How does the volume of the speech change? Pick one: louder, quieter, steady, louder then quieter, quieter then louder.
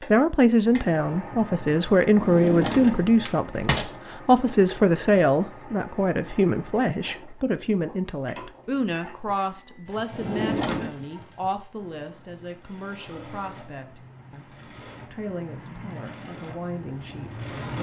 quieter.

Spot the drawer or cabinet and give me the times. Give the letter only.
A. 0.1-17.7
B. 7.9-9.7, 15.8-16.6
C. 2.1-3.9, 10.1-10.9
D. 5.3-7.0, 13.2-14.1
C.